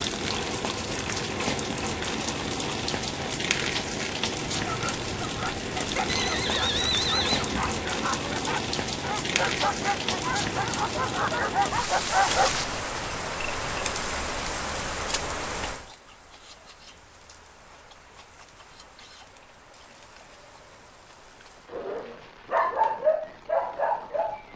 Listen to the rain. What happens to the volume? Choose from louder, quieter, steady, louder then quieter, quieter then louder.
quieter.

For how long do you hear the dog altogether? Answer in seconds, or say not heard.
11 s.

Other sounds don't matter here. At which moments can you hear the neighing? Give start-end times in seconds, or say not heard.
6.0-7.8.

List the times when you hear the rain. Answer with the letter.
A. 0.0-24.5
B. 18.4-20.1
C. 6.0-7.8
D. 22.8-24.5
A.